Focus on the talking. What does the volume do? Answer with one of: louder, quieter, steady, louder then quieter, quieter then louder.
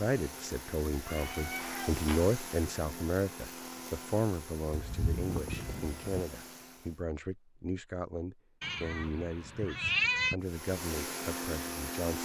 quieter.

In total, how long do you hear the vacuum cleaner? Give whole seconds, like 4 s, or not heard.
9 s.